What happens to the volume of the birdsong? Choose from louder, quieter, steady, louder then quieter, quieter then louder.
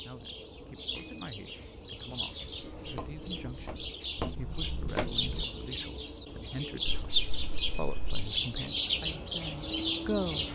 louder.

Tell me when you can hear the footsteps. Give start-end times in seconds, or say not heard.
2.8-5.5.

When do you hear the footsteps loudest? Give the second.
5 s.